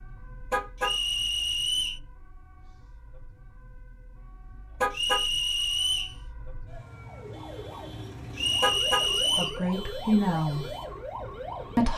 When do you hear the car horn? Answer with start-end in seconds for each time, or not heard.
0.5-0.9, 4.8-5.2, 8.6-9.1.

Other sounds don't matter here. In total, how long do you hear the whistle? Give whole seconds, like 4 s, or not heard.
4 s.